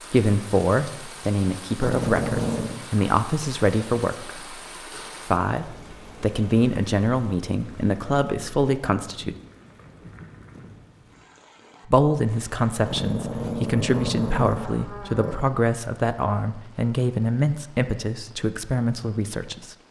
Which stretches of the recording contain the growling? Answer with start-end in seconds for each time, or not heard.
1.8-2.8, 12.8-15.4.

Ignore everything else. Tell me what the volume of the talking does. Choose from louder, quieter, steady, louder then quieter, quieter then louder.
steady.